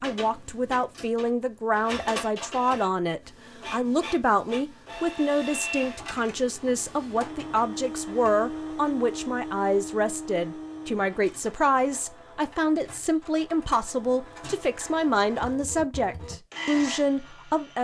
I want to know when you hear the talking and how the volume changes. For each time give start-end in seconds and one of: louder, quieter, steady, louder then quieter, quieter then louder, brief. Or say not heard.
0.0-17.8 steady.